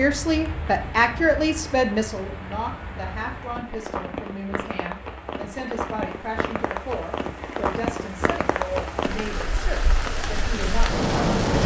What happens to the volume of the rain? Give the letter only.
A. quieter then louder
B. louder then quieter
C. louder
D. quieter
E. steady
C.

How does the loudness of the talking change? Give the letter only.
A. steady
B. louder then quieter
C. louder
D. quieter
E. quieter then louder
D.